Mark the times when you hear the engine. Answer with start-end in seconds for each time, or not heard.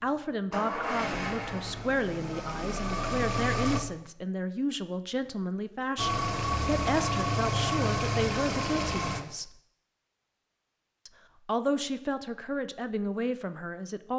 0.0-3.8, 6.0-9.2.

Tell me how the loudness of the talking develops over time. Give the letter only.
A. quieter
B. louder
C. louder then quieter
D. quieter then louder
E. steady
E.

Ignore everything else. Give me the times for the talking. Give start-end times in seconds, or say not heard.
0.0-9.5, 11.1-14.1.